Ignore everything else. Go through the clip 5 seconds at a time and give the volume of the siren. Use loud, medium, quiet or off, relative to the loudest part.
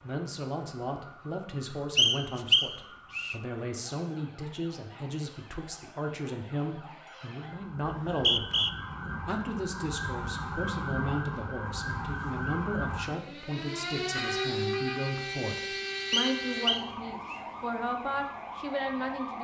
quiet, medium, loud, loud.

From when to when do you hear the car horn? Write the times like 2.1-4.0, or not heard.
14.1-15.2.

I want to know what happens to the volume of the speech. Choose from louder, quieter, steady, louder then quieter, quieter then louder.
steady.